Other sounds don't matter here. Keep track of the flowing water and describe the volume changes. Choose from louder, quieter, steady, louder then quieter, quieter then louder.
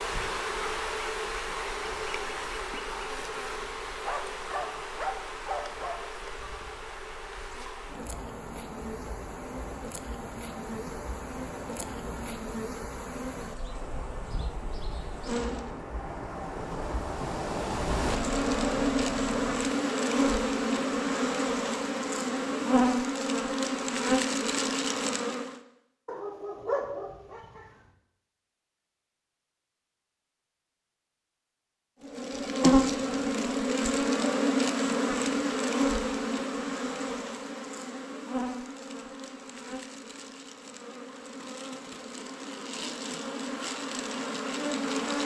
louder.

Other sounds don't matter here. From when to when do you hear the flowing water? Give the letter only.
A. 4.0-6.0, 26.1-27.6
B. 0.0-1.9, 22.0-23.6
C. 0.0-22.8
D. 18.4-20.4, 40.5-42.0
C.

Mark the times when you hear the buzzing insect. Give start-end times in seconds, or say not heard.
0.0-15.8, 17.9-25.6, 32.0-45.2.